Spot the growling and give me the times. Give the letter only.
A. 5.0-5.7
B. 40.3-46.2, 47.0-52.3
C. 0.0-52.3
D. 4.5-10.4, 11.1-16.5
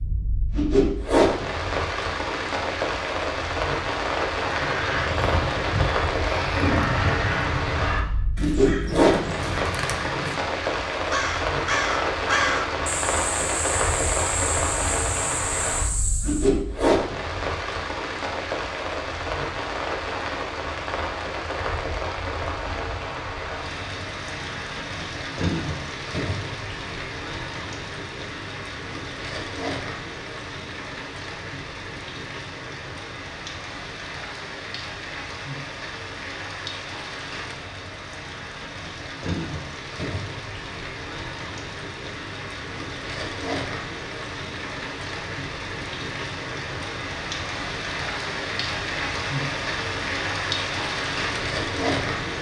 A.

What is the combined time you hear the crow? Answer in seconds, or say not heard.
11 s.